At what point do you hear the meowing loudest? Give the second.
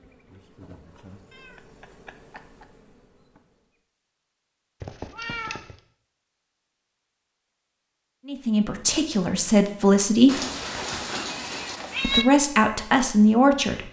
12 s.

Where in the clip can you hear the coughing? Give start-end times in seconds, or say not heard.
not heard.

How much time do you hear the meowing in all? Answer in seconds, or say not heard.
4 s.